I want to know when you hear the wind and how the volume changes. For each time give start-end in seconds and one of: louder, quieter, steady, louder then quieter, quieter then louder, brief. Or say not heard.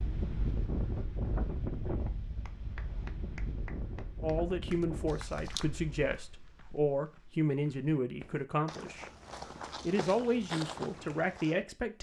0.0-6.2 quieter.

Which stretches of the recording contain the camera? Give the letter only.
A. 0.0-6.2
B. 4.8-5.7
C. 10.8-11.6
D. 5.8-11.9
B.